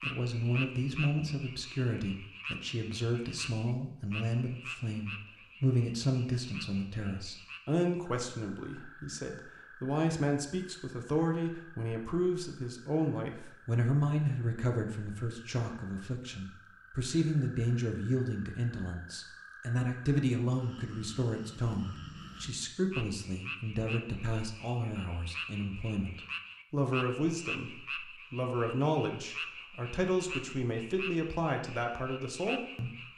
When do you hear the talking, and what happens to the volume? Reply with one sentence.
The talking can be heard from 0.0 to 33.0 s, at a steady volume.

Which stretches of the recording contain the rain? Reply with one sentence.
You can't hear the rain here.